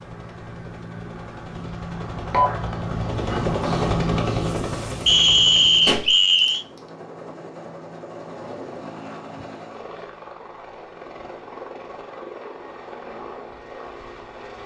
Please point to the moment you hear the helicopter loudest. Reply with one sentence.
The volume of the helicopter peaks at 4 seconds.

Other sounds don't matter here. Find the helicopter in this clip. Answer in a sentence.
The helicopter can be heard from 0.0 to 14.6 s.